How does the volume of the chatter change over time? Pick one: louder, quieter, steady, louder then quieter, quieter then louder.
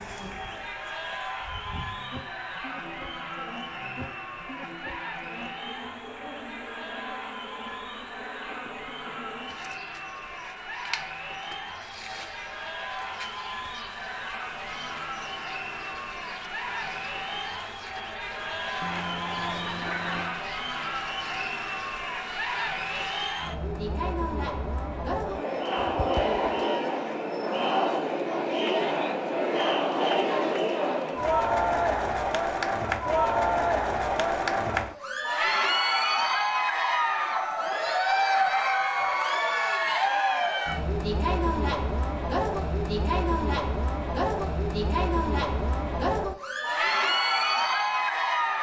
louder.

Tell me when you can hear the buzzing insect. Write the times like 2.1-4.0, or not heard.
0.0-23.4.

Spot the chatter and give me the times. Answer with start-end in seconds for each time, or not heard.
0.0-48.5.